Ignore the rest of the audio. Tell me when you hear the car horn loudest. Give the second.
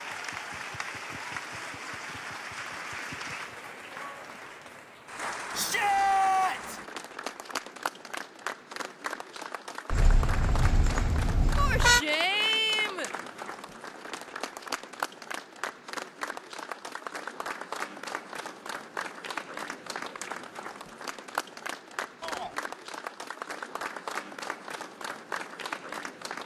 12 s.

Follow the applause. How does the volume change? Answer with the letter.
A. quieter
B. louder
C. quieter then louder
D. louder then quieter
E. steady
E.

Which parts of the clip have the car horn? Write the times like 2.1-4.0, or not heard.
9.9-12.1.